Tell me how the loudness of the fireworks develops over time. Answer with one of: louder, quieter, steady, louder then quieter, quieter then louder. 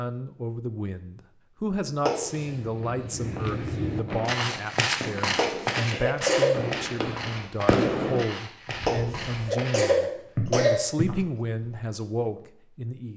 louder.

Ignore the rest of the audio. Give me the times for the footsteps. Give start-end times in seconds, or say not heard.
2.5-12.4.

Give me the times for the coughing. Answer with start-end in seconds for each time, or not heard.
2.0-2.5, 5.3-6.6, 8.8-10.8.